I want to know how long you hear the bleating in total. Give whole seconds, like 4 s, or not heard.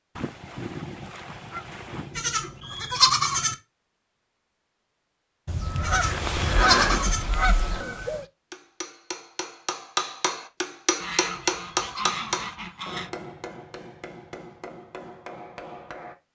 4 s.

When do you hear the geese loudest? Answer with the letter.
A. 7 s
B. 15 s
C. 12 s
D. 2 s
A.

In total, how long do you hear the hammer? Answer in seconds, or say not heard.
8 s.